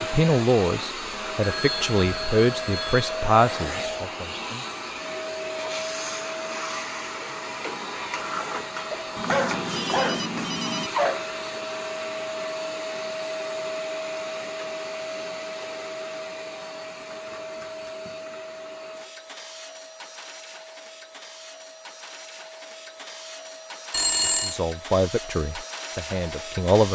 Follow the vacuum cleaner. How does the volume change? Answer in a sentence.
The volume of the vacuum cleaner goes down.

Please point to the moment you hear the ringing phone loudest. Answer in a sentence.
The volume of the ringing phone peaks at 24 seconds.